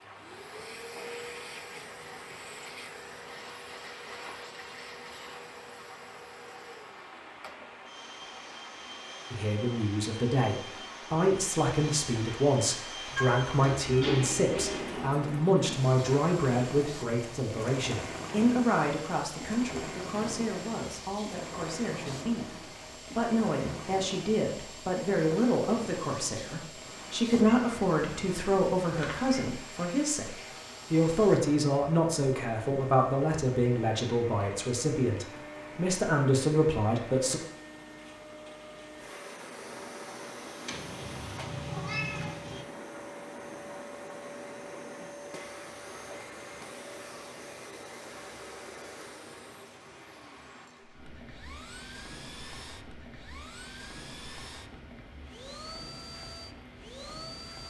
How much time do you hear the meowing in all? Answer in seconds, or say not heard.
6 s.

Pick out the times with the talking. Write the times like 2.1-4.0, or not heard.
9.3-37.4.